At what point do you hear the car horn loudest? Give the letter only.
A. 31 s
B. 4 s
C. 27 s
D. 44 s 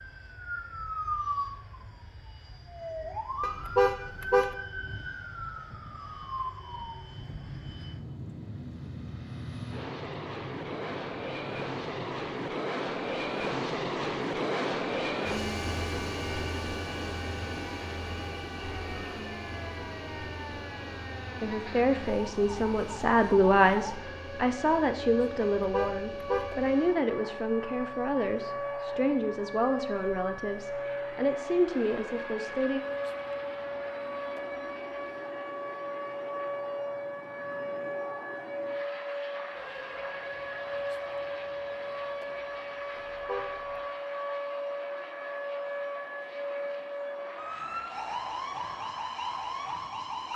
B.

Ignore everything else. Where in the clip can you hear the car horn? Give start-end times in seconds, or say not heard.
3.4-4.5, 25.6-26.5, 43.0-43.8.